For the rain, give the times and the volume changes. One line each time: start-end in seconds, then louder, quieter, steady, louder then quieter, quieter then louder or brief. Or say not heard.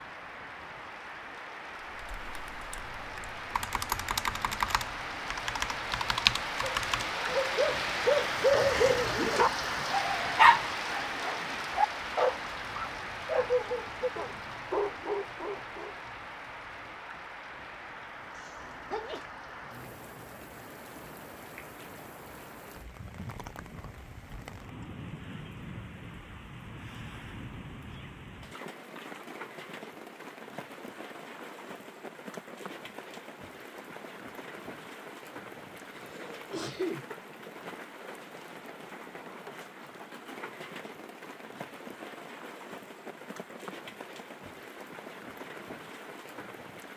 0.0-46.9 quieter.